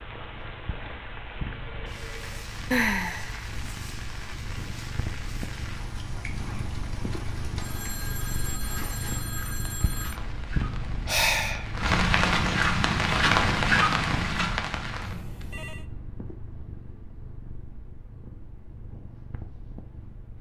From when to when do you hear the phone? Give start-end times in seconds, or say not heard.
1.6-2.5, 7.6-10.2, 14.9-15.8.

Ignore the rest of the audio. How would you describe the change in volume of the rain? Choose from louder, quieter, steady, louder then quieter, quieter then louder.
louder.